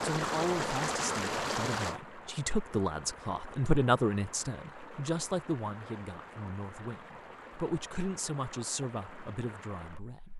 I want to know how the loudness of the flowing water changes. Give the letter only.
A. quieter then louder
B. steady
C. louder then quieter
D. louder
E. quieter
E.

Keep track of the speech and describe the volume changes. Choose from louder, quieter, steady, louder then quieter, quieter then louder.
louder then quieter.